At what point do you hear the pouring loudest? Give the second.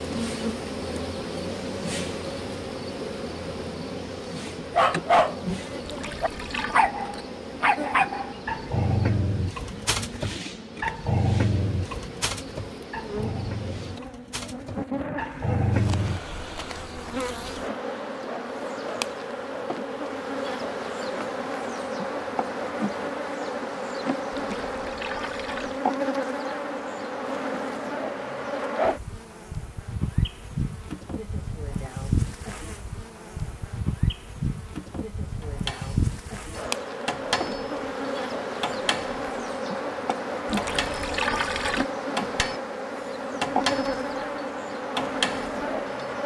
41 s.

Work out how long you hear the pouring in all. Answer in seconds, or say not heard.
4 s.